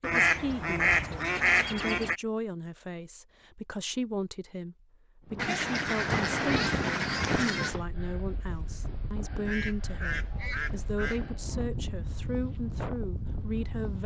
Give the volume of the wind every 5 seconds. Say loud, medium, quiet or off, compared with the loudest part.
off, loud, loud.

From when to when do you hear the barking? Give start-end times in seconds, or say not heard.
not heard.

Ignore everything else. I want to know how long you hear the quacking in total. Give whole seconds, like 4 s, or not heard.
6 s.